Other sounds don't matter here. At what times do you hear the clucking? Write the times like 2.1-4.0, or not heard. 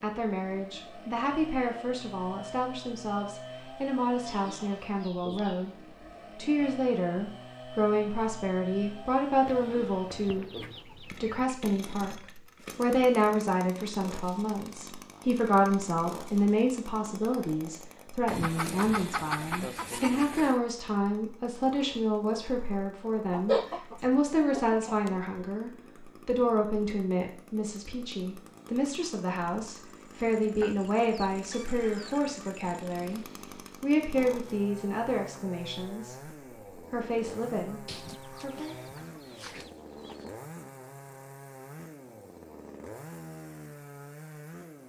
4.2-5.8, 9.4-11.4, 18.2-20.6, 23.3-25.2, 30.6-32.4, 37.9-40.3.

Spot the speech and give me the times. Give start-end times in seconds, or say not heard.
0.0-5.7, 6.3-10.4, 11.2-33.2, 33.8-38.8.